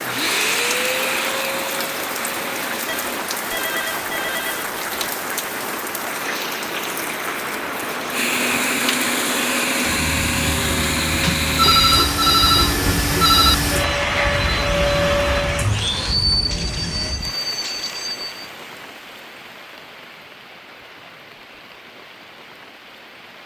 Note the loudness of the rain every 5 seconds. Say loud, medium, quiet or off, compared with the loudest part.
loud, loud, loud, medium, quiet.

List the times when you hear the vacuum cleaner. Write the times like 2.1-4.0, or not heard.
0.0-3.3, 8.1-17.1.